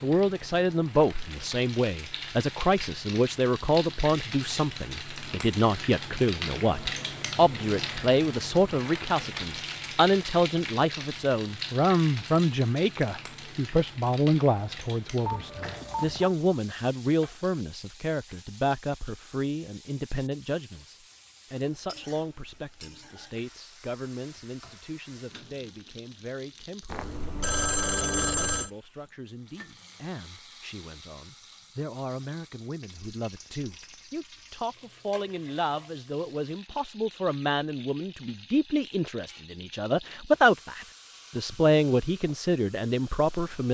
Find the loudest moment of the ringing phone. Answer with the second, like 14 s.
28 s.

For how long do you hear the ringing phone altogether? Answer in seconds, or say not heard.
3 s.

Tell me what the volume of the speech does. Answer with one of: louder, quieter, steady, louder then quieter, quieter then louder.
quieter then louder.